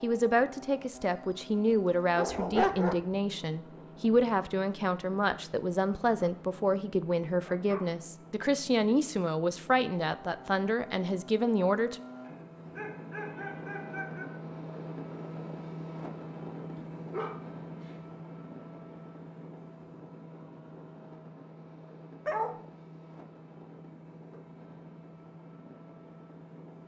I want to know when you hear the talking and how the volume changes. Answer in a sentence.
The talking can be heard from 0.0 to 12.0 s, at a steady volume.